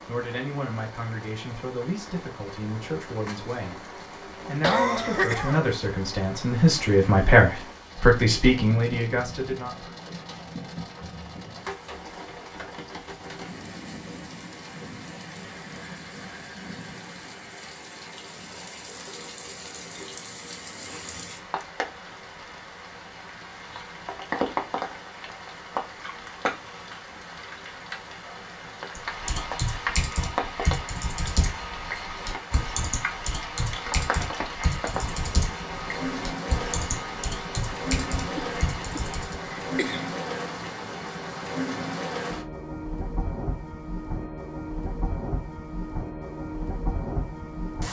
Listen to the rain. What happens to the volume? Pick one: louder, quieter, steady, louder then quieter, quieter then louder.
louder.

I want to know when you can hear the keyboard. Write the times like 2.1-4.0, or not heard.
28.9-39.4.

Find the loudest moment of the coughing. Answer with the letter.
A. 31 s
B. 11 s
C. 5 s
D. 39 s
C.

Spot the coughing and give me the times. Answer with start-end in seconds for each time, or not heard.
4.6-5.7, 38.4-40.0.